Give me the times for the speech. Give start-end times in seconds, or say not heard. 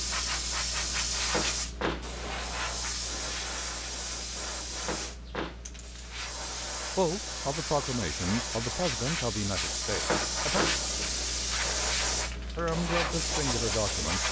7.0-10.7, 12.6-14.2.